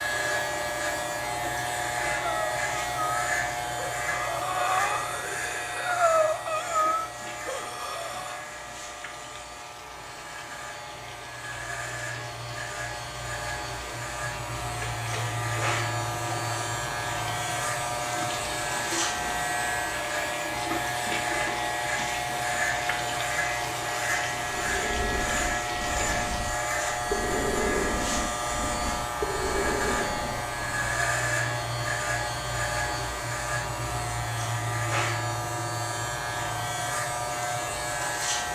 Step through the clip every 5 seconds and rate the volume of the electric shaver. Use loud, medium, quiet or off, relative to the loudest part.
loud, medium, medium, loud, loud, loud, loud, loud.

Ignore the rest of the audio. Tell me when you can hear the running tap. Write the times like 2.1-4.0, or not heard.
6.7-26.6.